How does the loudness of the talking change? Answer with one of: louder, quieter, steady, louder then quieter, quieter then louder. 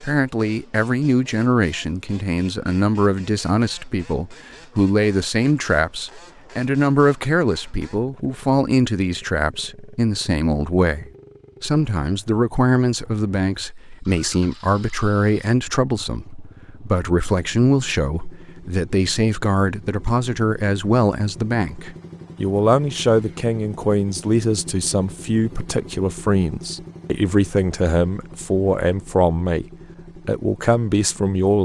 steady.